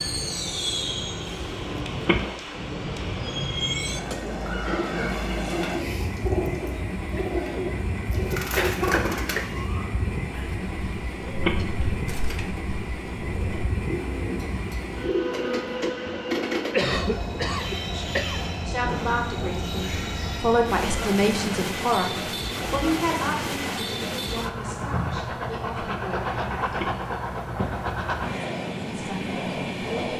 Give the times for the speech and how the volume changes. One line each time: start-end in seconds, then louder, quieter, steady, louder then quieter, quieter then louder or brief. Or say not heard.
17.9-26.9 louder then quieter
28.9-30.1 brief.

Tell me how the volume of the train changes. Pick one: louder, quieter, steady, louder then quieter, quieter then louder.
steady.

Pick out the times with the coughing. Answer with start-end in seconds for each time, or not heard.
8.6-9.5, 16.7-18.4.